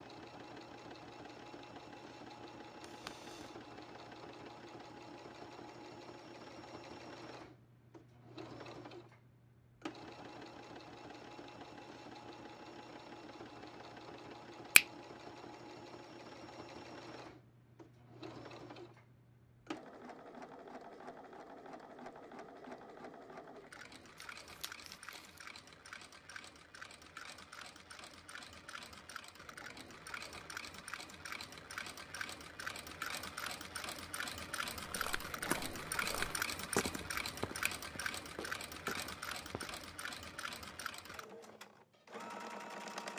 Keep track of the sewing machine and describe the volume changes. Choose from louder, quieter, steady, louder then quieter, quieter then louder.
louder.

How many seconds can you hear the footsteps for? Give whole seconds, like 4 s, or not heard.
5 s.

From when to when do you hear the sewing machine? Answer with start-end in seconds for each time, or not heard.
0.0-43.1.